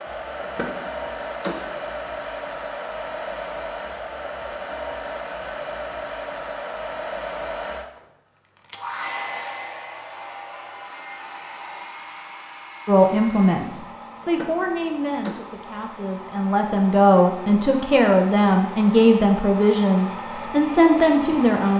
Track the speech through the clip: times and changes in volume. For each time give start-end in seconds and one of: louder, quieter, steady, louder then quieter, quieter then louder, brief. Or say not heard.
12.8-21.7 quieter then louder.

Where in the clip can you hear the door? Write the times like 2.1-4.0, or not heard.
0.4-1.9, 14.2-15.7.